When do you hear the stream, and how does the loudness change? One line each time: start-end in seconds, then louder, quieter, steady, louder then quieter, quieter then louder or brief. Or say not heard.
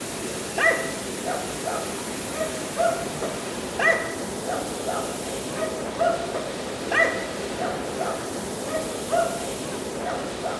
0.0-10.5 steady.